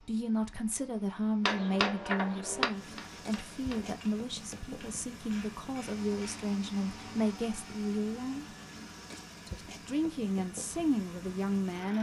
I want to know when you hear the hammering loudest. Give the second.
2 s.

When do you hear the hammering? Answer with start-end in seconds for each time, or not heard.
1.4-6.5.